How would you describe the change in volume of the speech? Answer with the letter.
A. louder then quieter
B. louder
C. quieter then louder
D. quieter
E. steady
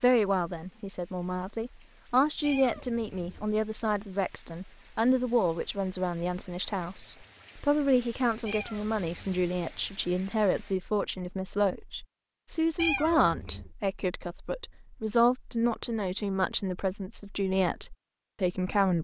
E.